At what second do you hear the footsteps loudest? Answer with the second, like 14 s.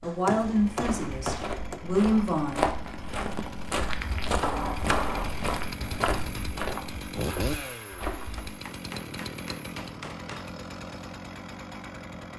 3 s.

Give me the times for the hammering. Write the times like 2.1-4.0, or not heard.
0.0-1.8, 4.4-6.5, 8.3-10.5.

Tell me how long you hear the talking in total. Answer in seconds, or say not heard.
3 s.